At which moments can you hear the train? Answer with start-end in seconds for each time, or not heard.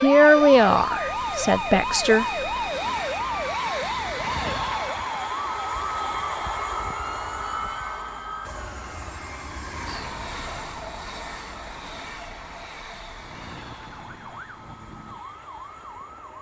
0.1-16.3.